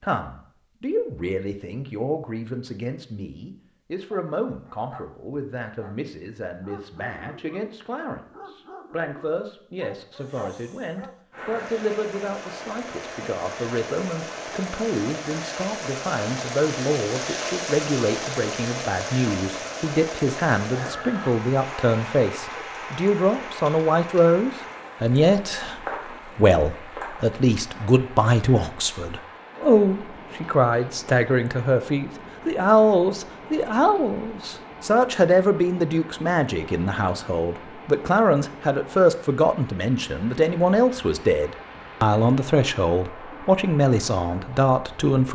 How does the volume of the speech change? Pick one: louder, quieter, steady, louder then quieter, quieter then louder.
louder.